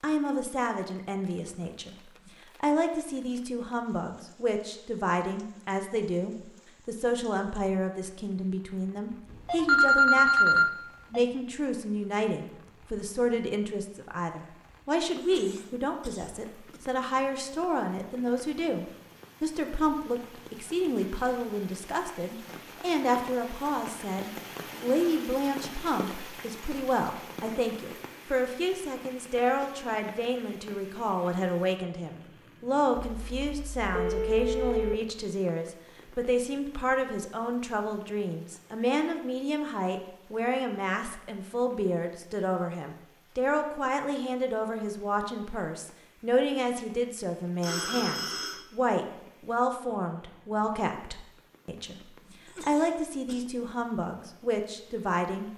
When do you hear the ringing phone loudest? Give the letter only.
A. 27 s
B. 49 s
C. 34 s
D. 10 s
D.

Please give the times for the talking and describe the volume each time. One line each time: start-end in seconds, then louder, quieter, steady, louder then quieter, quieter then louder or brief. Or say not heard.
0.0-55.5 steady.